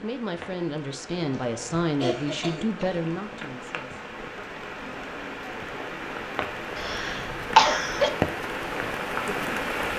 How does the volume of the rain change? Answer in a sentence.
The volume of the rain goes up.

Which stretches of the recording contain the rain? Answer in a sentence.
The rain can be heard from 0.0 to 9.9 s.